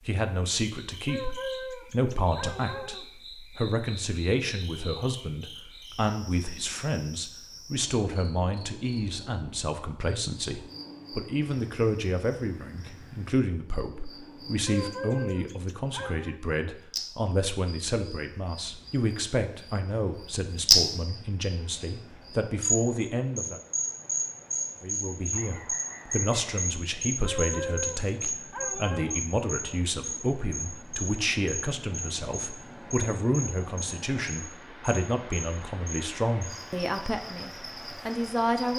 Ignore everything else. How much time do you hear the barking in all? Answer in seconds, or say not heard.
6 s.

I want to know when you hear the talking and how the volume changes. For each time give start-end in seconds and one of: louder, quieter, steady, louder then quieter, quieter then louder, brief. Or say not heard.
0.1-23.6 steady
24.8-38.7 steady.